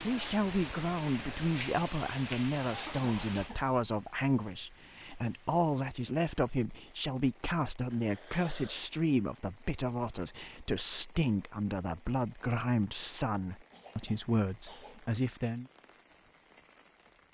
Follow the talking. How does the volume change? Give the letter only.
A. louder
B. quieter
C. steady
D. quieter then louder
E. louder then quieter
C.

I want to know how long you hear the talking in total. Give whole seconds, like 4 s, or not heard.
16 s.